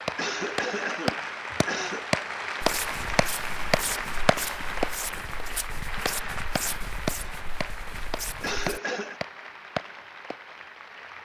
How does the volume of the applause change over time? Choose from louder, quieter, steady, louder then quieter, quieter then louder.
quieter.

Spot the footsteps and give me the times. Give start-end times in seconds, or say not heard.
2.6-8.8.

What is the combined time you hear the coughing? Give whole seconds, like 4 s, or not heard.
3 s.